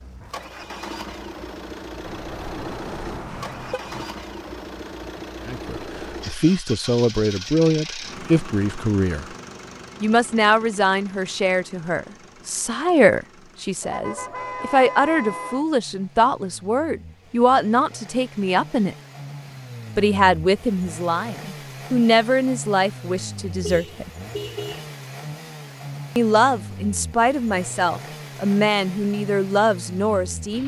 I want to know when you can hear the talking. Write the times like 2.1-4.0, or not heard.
5.5-9.3, 10.0-18.9, 19.9-24.1, 26.1-30.6.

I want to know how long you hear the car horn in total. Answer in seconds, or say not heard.
5 s.